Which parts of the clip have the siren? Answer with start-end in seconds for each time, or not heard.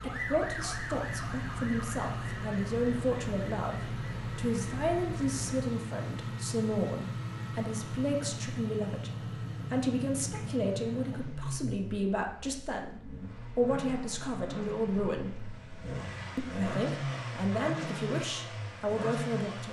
0.0-5.5.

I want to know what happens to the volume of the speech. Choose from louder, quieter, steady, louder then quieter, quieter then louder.
steady.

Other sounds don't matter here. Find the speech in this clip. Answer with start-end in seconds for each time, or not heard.
0.0-15.4, 16.4-19.6.